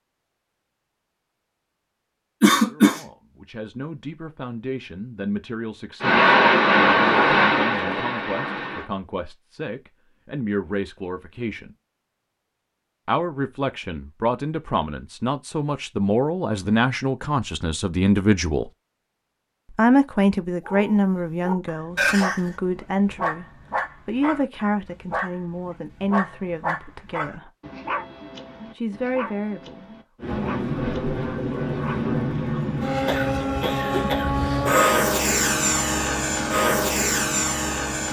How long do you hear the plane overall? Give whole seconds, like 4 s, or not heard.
11 s.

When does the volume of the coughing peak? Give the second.
3 s.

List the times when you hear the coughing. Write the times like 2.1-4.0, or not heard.
2.4-3.0, 21.9-22.5, 33.0-34.4.